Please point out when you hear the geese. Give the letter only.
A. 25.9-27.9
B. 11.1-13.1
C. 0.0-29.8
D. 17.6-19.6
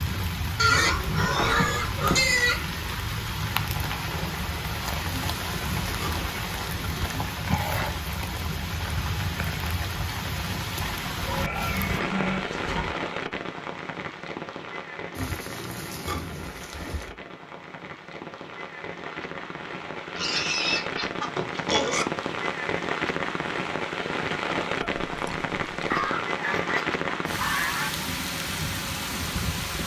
A.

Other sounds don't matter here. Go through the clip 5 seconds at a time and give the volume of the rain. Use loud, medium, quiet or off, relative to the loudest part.
loud, loud, loud, medium, loud, loud.